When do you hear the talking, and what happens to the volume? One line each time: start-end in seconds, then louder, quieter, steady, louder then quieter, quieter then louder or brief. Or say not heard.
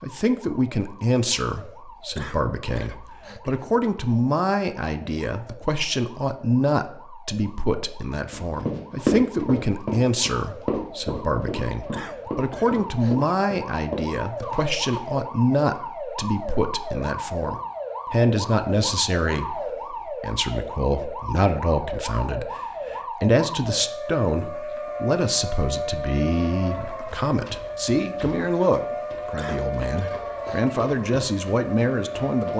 0.0-32.5 steady.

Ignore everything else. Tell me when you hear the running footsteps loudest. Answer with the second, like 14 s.
9 s.